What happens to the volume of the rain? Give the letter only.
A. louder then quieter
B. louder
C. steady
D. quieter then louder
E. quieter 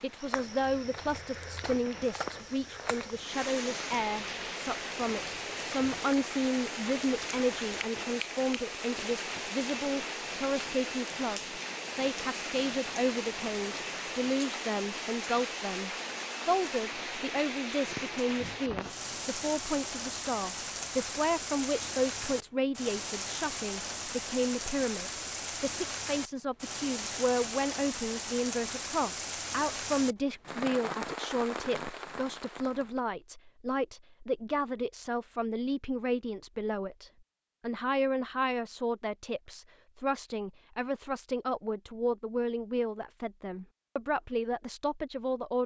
C.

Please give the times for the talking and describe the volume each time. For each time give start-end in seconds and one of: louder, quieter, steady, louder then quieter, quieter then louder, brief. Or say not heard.
0.0-45.6 steady.